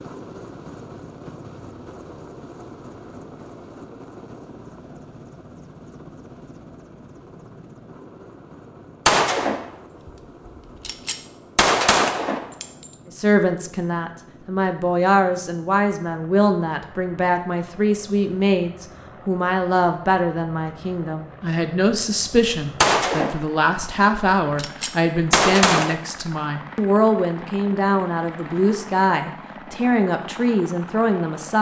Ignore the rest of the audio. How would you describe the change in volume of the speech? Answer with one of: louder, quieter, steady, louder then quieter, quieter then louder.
steady.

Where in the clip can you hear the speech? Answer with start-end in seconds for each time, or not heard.
13.1-31.5.